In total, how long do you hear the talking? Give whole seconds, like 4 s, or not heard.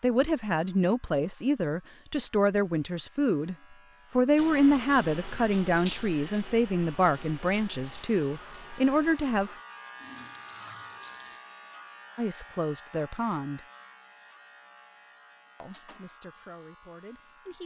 13 s.